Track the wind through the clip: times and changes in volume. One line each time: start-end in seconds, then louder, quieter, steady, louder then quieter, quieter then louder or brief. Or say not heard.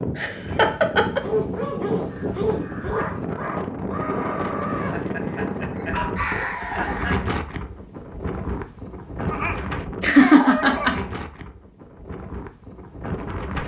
0.0-13.6 quieter.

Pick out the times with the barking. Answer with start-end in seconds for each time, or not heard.
1.2-3.0, 5.3-7.0, 9.2-11.2.